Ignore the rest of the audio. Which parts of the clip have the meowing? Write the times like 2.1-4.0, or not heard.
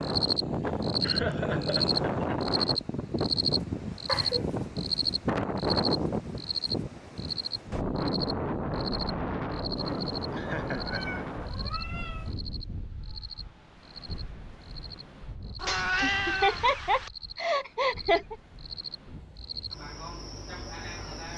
4.0-4.5, 9.8-12.3, 15.6-17.1.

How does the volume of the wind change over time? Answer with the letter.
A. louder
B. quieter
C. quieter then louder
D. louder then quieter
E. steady
B.